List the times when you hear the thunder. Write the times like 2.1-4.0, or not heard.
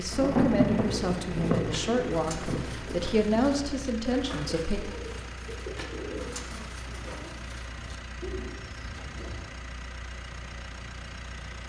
0.1-3.7.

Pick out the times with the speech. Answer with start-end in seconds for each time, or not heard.
0.0-4.8.